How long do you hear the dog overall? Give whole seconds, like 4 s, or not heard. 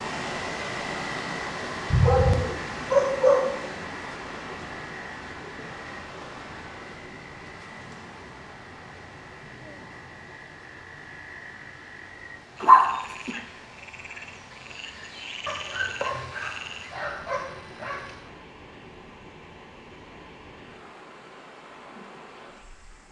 5 s.